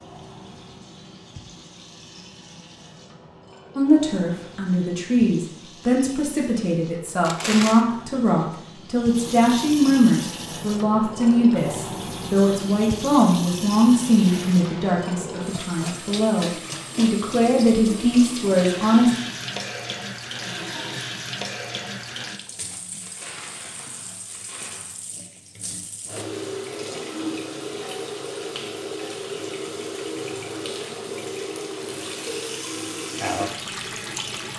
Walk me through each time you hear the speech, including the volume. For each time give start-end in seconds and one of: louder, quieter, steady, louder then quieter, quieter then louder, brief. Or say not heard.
3.8-19.1 steady.